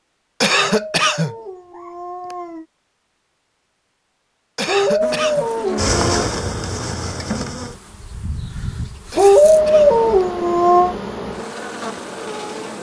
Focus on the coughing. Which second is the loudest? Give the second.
1 s.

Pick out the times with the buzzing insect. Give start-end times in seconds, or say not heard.
5.0-12.7.